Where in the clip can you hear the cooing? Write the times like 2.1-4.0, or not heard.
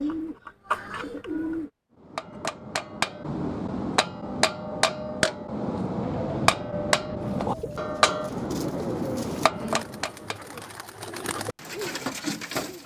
0.0-1.7, 7.2-12.8.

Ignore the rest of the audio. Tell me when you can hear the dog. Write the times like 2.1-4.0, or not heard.
not heard.